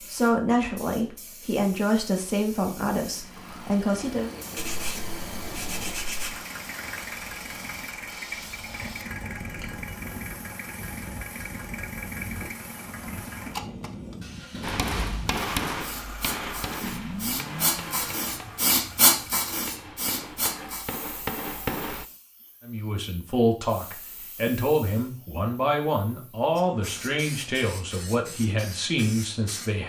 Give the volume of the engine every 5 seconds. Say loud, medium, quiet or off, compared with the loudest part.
loud, loud, loud, loud, off, off.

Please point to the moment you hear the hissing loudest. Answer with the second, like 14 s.
19 s.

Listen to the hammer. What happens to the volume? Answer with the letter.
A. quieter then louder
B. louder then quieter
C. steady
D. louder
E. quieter
A.